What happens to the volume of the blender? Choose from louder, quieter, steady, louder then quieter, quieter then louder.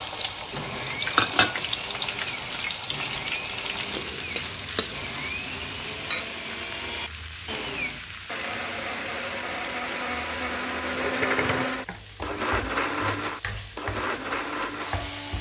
louder.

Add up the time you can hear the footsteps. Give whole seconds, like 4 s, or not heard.
not heard.